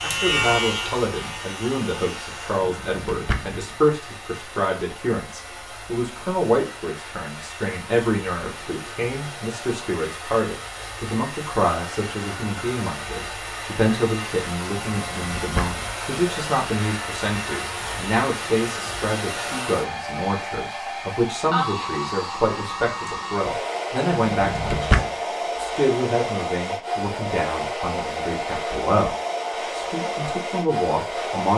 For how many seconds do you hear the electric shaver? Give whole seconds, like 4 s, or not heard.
3 s.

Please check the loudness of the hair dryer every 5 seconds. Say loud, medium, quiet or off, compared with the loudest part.
medium, medium, medium, loud, loud, loud, loud.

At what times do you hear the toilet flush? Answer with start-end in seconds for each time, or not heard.
not heard.